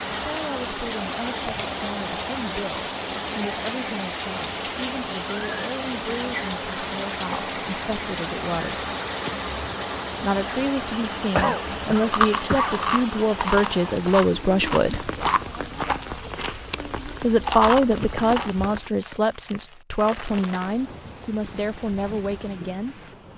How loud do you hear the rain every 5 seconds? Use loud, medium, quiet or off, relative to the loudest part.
loud, loud, loud, medium, medium.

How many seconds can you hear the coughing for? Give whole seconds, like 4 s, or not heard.
2 s.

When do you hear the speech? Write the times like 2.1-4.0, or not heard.
0.1-8.9, 10.2-15.1, 17.2-23.0.